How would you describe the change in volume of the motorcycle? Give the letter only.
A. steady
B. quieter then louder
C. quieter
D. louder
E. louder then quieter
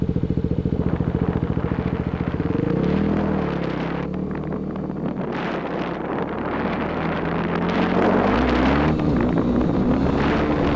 B.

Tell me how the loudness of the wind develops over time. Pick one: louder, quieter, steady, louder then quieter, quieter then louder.
louder.